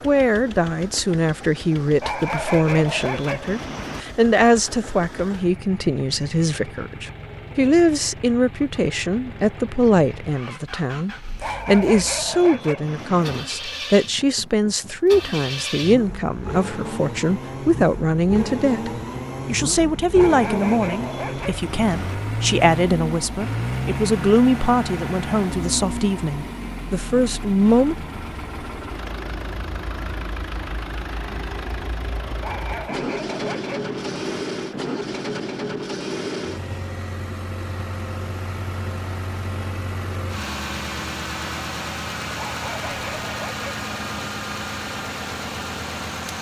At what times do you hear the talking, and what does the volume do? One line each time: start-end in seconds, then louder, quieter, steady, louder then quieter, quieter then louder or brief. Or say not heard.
0.0-27.9 steady.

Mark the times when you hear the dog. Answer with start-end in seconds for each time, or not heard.
2.0-4.0, 11.4-13.4, 20.1-22.1, 32.4-34.5, 42.4-44.2.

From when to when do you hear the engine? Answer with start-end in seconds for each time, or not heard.
0.0-46.3.